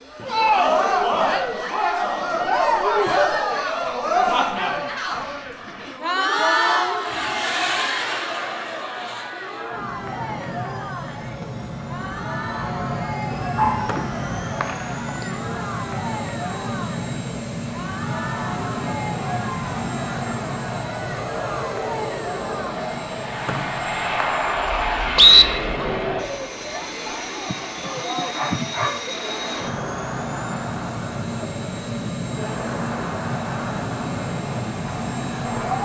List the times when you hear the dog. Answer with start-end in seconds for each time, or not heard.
13.6-15.3, 27.2-29.0.